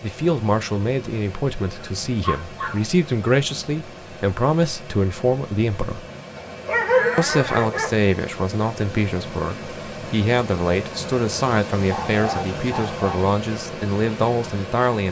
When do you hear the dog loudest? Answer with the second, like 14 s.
7 s.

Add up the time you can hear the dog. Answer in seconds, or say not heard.
4 s.